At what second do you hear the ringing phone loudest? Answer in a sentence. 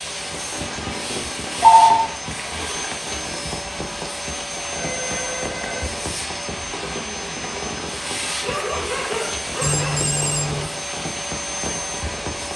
The loudest moment of the ringing phone is at 2 seconds.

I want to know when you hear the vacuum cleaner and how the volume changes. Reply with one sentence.
You can hear the vacuum cleaner from 0.0 to 12.5 s, at a steady volume.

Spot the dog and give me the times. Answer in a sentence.
You can hear the dog from 8.4 to 10.1 s.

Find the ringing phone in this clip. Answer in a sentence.
You can hear the ringing phone from 0.5 to 2.0 s, from 4.7 to 5.9 s and from 9.6 to 10.7 s.